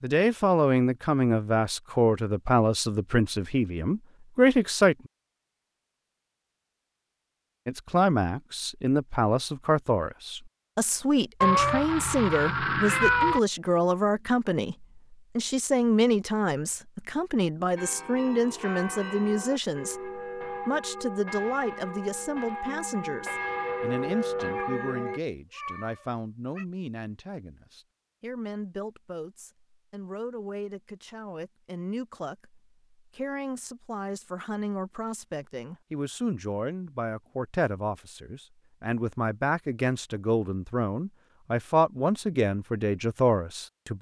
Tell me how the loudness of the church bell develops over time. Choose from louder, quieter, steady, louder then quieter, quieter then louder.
louder.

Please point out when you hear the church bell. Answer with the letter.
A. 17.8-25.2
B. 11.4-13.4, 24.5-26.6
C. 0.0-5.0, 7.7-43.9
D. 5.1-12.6
A.